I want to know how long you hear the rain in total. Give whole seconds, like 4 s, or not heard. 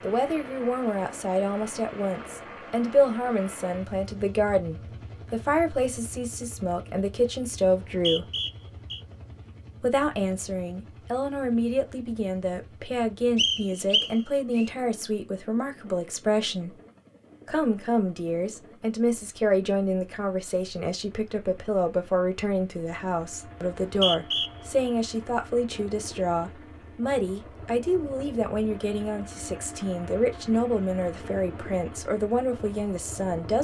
not heard.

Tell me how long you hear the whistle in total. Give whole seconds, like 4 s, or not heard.
4 s.